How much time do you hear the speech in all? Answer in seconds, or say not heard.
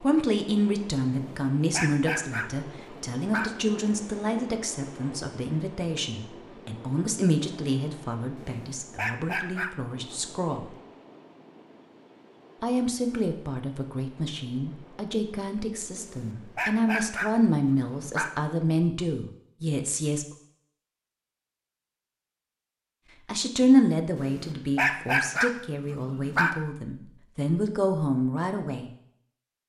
24 s.